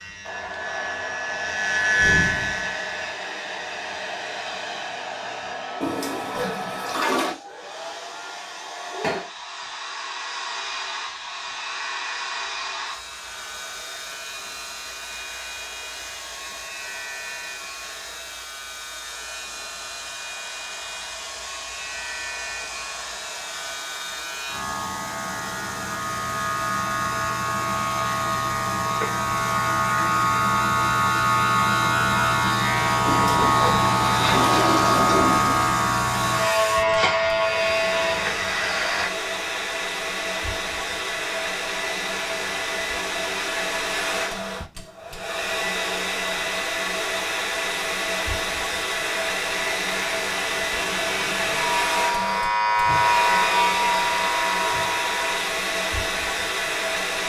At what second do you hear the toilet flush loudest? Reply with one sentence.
The volume of the toilet flush peaks at 35 seconds.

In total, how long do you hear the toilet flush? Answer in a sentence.
The toilet flush can be heard for 4 seconds in total.